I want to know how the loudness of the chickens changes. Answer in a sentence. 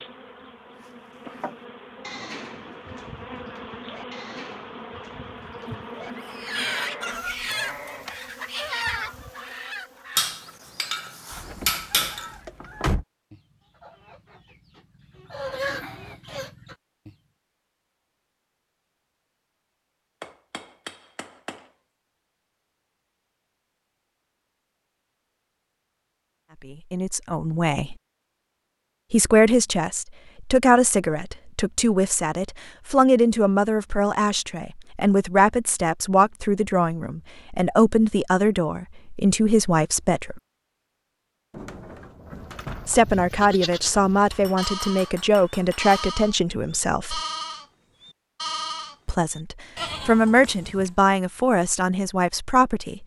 The loudness of the chickens goes down, then up.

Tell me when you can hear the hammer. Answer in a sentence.
The hammer can be heard from 10.2 to 12.3 s, from 20.2 to 21.7 s and from 44.3 to 46.0 s.